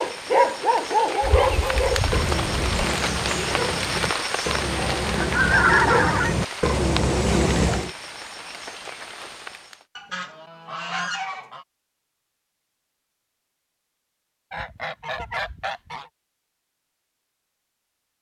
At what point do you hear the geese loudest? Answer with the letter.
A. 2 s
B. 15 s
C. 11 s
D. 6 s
D.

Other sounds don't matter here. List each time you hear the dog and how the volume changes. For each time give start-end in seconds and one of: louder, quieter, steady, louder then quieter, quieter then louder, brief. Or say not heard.
0.0-7.9 quieter then louder.